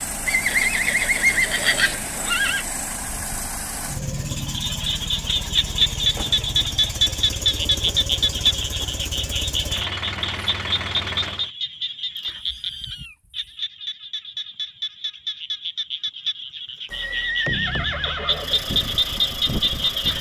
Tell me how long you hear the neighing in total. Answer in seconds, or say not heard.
4 s.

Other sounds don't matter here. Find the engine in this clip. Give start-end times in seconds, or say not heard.
0.0-11.5, 18.3-20.1.